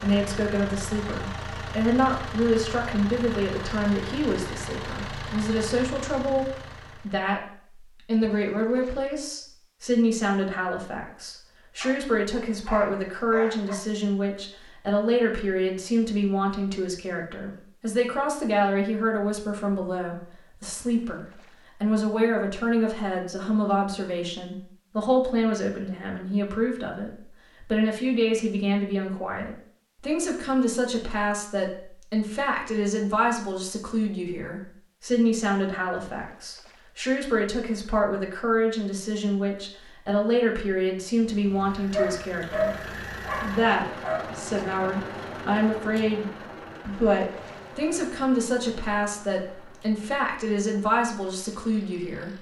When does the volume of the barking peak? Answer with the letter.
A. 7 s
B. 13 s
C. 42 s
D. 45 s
C.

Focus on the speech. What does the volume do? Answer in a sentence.
The loudness of the speech stays about the same.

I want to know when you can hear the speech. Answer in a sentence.
You can hear the speech from 0.0 to 42.8 s and from 43.4 to 52.3 s.